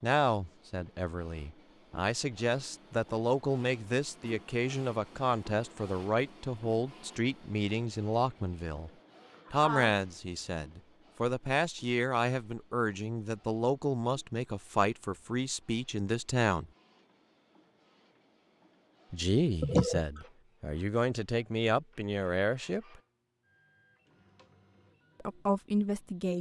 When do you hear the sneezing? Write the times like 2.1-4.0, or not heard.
8.7-9.9, 19.6-20.1.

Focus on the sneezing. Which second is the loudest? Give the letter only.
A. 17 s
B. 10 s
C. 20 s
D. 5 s
C.